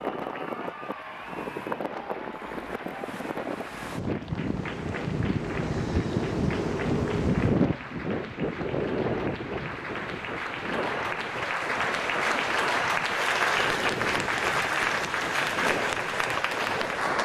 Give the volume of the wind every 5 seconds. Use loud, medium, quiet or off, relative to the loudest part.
medium, loud, medium, medium.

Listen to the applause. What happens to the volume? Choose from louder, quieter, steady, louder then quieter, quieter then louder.
louder.